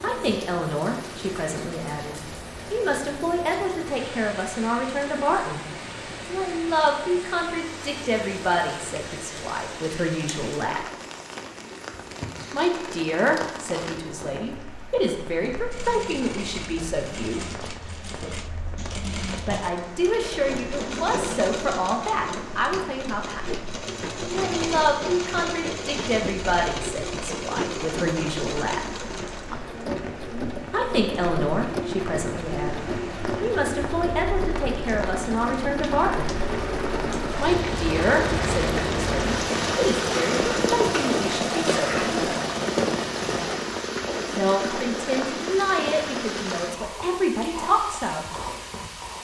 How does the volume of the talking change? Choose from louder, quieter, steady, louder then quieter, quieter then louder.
steady.